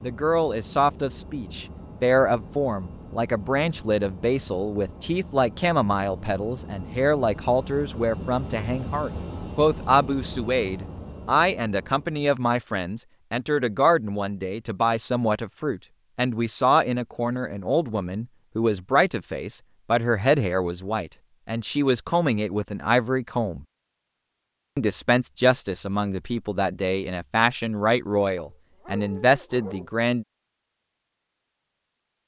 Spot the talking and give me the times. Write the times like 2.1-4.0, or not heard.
0.0-23.6, 24.8-30.2.